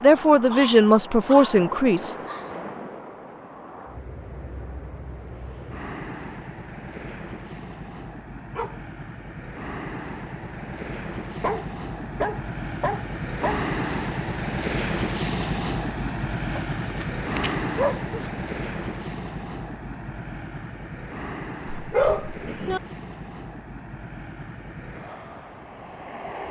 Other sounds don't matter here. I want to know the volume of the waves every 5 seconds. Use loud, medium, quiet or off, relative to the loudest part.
medium, medium, loud, loud, medium, medium.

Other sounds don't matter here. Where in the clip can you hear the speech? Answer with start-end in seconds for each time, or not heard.
0.0-2.1.